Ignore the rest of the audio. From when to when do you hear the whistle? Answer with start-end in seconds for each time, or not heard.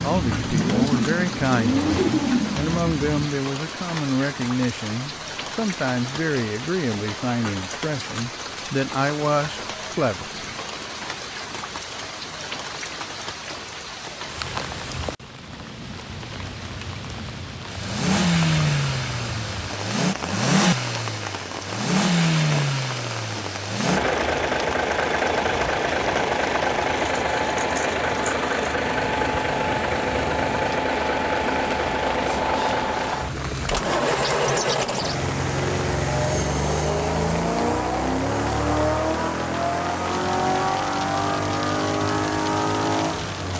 not heard.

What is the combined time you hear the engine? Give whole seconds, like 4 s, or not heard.
29 s.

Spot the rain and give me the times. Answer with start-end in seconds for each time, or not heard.
0.0-43.5.